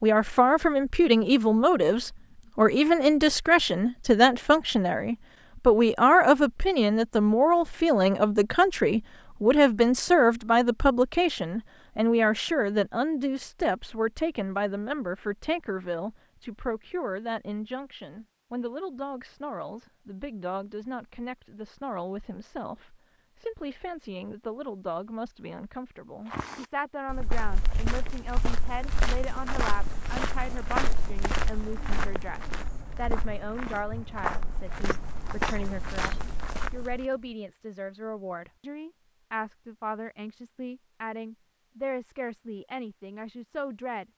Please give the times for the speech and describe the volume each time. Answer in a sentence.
The speech can be heard from 0.0 to 44.0 s, getting quieter.